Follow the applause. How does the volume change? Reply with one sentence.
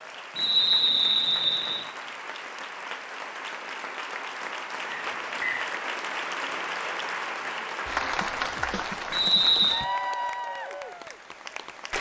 The volume of the applause goes up.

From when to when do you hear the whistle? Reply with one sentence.
The whistle can be heard from 0.3 to 1.9 s, from 4.9 to 5.7 s and from 9.1 to 9.8 s.